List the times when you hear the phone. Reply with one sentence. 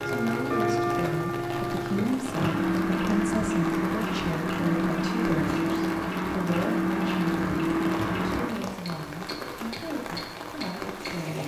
The phone can't be heard in this clip.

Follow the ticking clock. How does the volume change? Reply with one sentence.
The volume of the ticking clock goes down.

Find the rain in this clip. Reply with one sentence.
You can hear the rain from 0.0 to 11.4 s.